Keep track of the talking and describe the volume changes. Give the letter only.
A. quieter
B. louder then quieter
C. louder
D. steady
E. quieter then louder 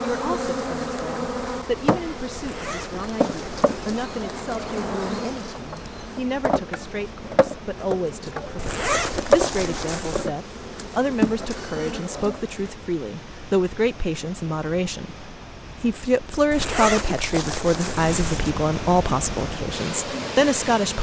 C.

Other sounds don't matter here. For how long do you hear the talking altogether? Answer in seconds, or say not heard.
21 s.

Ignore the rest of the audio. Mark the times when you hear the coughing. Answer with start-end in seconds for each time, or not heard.
not heard.